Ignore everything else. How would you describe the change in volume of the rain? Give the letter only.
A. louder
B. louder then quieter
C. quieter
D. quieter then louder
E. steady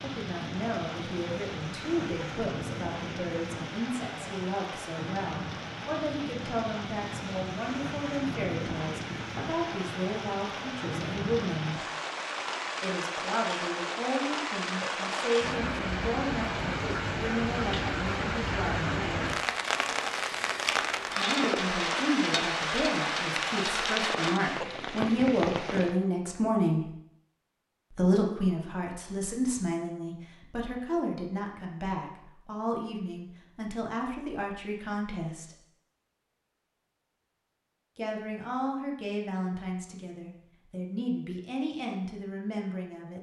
A.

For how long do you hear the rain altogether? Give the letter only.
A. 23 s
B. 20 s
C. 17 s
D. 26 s
D.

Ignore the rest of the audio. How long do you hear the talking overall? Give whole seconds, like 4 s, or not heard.
37 s.